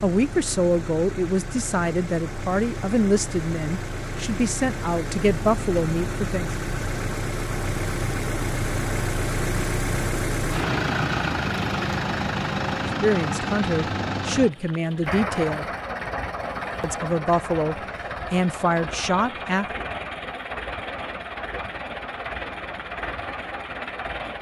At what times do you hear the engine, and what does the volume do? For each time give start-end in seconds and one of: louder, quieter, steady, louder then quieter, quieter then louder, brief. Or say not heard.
0.0-24.3 louder then quieter.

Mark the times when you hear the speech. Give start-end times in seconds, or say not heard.
0.0-6.5, 13.0-15.7, 16.8-19.8.